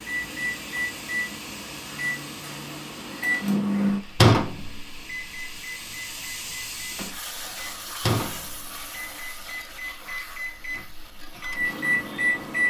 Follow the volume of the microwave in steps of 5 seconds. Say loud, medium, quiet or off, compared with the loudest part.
loud, medium, loud.